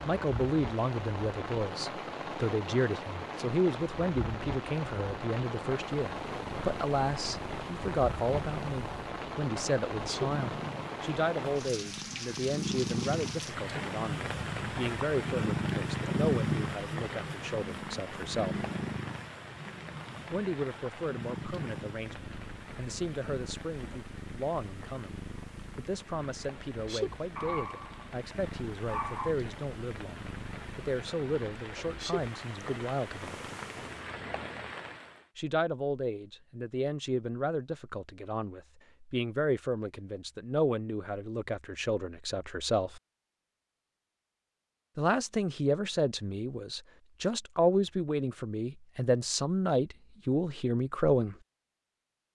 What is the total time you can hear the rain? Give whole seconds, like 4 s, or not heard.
35 s.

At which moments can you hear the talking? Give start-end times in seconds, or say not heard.
0.1-18.6, 20.3-33.4, 35.4-43.0, 45.0-51.4.